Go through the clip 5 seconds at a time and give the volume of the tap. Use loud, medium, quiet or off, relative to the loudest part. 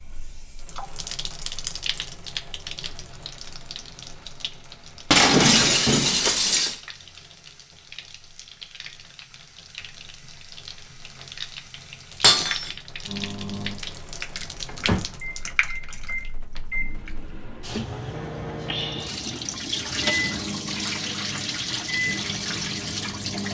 medium, quiet, medium, medium, loud.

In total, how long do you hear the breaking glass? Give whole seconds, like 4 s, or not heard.
2 s.